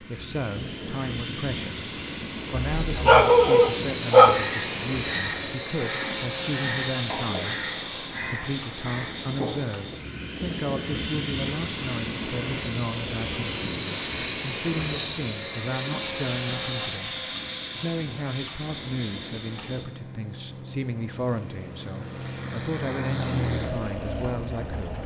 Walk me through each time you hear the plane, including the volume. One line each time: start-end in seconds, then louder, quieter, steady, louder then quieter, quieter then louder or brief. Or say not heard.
0.0-25.0 steady.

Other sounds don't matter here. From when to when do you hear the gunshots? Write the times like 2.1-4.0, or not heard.
not heard.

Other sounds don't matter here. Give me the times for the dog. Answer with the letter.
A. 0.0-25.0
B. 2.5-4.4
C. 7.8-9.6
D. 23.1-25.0
B.